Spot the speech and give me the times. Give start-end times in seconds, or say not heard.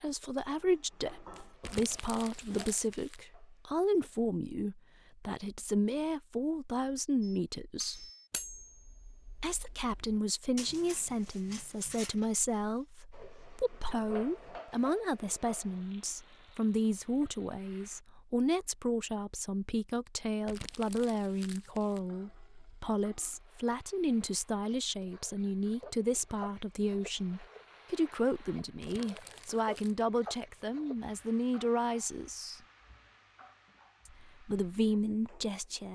0.0-8.1, 9.3-32.6, 34.0-35.9.